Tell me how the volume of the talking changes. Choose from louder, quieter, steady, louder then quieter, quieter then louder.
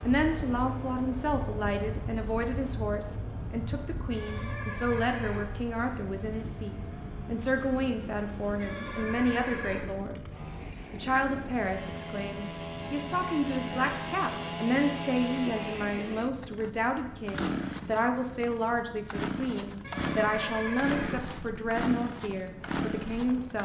steady.